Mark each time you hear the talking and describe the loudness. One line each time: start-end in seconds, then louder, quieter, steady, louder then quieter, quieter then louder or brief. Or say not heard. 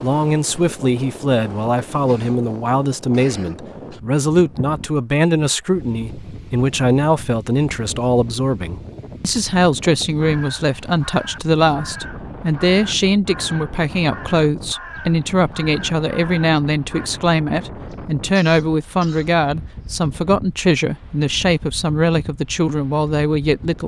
0.0-23.8 steady.